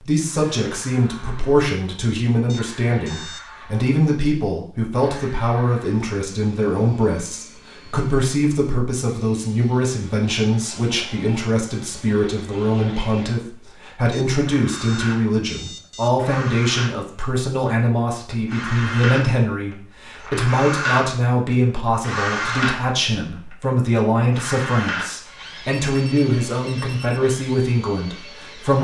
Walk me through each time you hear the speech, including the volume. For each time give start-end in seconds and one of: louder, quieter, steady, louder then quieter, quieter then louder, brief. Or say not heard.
0.0-28.7 steady.